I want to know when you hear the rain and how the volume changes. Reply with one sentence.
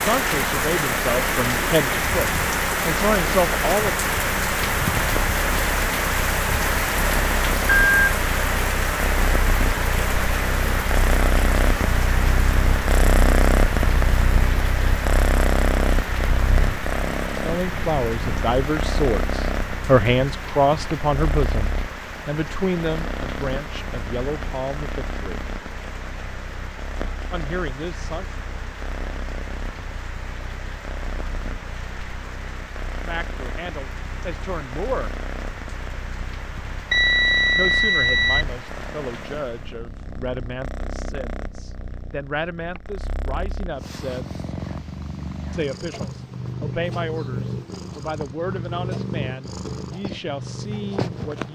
You can hear the rain from 0.0 to 39.8 s, getting quieter.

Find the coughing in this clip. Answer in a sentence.
You can't hear the coughing here.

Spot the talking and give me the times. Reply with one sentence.
You can hear the talking from 0.0 to 4.0 s, from 17.4 to 25.4 s, from 27.3 to 28.4 s, from 33.0 to 35.1 s, from 37.5 to 44.4 s and from 45.5 to 51.5 s.